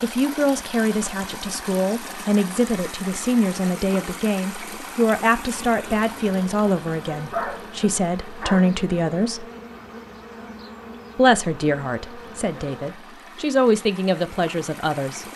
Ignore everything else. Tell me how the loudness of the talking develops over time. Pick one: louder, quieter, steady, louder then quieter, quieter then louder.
steady.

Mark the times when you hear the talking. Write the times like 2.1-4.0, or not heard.
0.0-9.4, 11.2-15.2.